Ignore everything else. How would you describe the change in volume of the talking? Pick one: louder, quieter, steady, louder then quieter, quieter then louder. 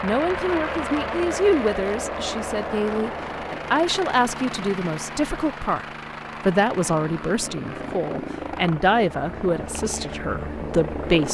steady.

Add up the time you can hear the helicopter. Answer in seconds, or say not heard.
11 s.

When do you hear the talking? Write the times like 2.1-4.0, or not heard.
0.0-5.8, 6.5-11.2.